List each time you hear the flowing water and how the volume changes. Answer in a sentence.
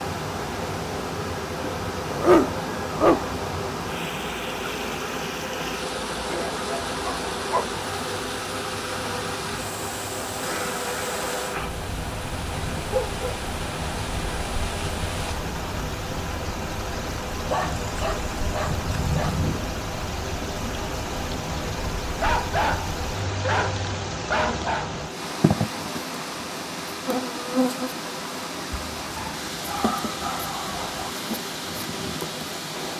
The flowing water can be heard from 0.0 to 32.9 s, at a steady volume.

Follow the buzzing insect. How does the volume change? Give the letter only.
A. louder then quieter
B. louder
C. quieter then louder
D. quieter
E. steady
E.